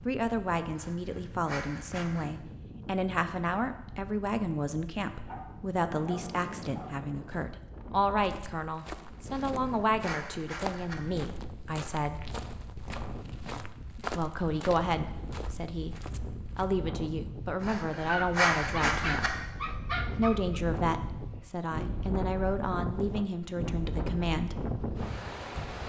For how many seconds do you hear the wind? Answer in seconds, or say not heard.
26 s.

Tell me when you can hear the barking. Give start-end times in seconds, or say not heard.
5.2-7.0, 17.9-20.6.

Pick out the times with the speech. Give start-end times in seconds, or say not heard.
0.1-12.3, 14.2-19.4, 20.1-24.6.